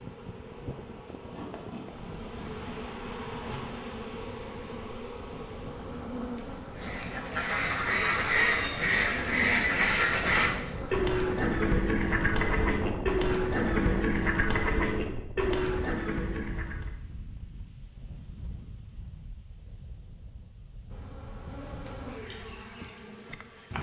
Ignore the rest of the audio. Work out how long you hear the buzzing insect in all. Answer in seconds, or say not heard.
14 s.